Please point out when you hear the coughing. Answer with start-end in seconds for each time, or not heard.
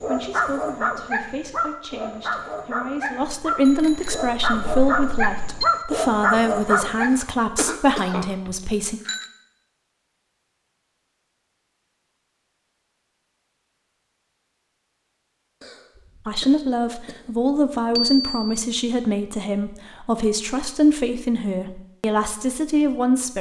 7.0-8.3, 15.6-17.2.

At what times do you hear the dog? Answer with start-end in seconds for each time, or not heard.
0.0-7.1.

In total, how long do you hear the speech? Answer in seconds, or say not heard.
16 s.